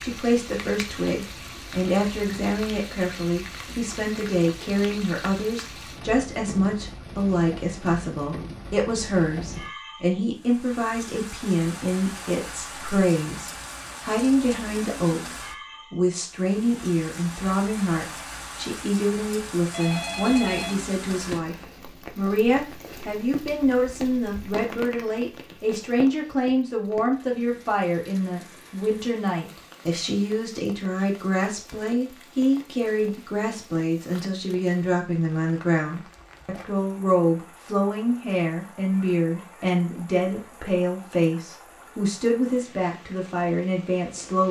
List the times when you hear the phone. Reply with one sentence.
The phone can be heard from 19.7 to 21.4 s.